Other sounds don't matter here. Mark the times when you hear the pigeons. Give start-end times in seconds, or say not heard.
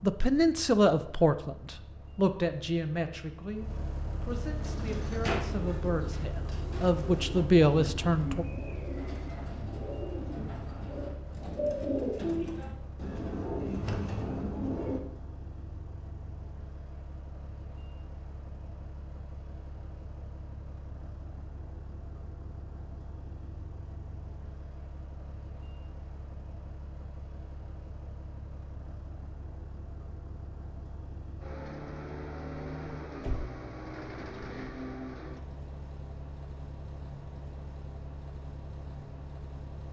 4.5-15.0.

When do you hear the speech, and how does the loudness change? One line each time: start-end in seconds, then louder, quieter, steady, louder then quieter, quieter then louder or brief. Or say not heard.
0.0-8.4 quieter then louder.